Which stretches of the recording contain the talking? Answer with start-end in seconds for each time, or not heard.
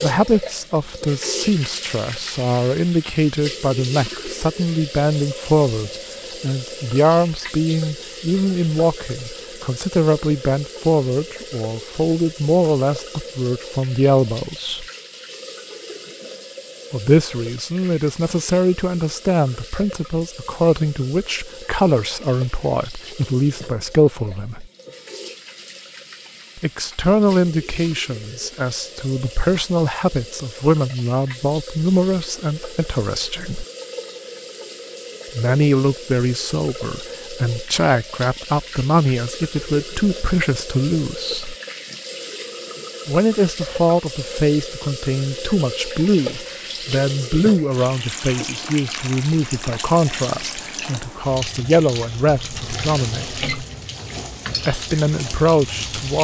0.0-14.8, 16.9-24.6, 26.6-33.6, 35.4-41.5, 43.0-53.4, 54.6-56.1.